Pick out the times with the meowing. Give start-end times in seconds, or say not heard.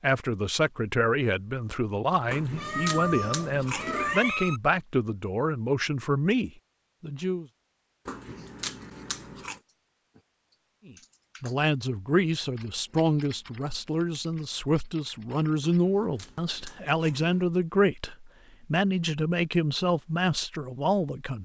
2.5-4.6.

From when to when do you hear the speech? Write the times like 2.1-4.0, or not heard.
0.0-7.5, 10.8-21.4.